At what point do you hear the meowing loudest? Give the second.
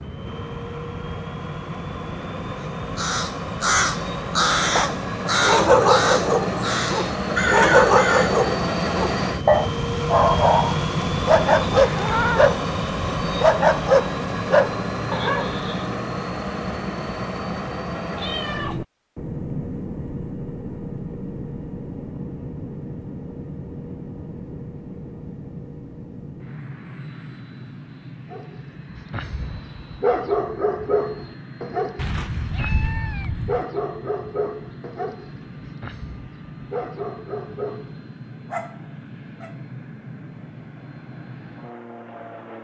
12 s.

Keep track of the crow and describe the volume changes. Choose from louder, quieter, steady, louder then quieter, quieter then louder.
quieter then louder.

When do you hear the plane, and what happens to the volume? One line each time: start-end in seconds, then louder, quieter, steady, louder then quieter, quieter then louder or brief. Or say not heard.
0.0-42.5 quieter.